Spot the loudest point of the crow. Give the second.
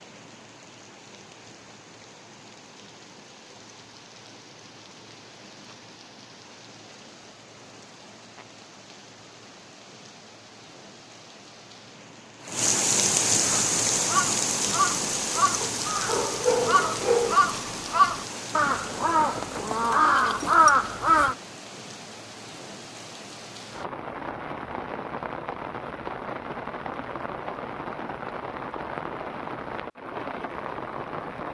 21 s.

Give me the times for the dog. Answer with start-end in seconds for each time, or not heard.
15.6-17.5.